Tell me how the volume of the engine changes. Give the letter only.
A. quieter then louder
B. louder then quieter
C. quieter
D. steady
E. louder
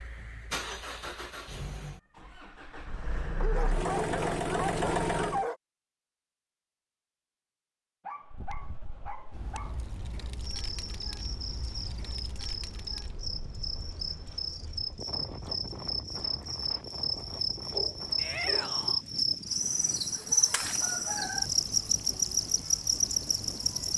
A.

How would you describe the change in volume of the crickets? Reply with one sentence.
The volume of the crickets goes up.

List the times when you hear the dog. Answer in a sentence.
The dog can be heard from 3.4 to 5.6 s, from 8.1 to 9.8 s and from 17.1 to 18.9 s.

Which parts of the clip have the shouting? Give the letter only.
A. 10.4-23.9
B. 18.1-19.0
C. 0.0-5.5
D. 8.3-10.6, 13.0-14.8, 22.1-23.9
B.